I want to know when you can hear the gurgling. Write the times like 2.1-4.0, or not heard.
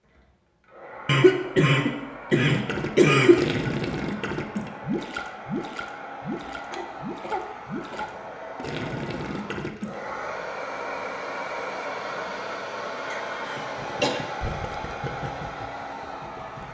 2.5-9.9, 13.3-16.6.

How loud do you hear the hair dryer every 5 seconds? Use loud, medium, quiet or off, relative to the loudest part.
medium, medium, loud, loud.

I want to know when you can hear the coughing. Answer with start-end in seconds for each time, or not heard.
1.1-3.5, 6.7-8.1, 13.1-14.2.